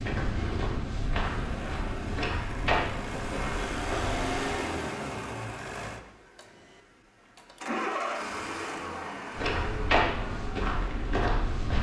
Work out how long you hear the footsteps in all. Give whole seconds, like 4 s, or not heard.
7 s.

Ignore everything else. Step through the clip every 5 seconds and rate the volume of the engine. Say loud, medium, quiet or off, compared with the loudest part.
loud, loud, medium.